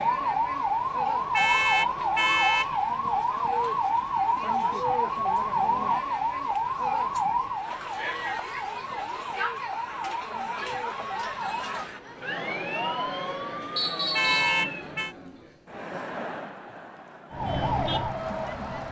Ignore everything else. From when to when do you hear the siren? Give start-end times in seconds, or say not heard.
0.0-14.9, 17.3-18.8.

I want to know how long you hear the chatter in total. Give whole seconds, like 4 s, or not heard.
19 s.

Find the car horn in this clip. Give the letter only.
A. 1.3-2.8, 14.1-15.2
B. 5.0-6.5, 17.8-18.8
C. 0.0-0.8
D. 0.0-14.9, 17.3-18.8
A.